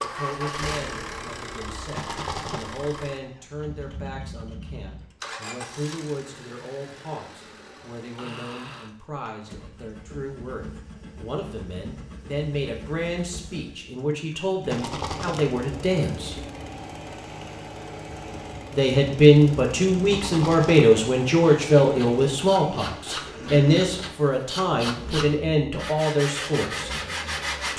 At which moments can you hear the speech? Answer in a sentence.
The speech can be heard from 0.0 to 16.4 s and from 18.7 to 26.9 s.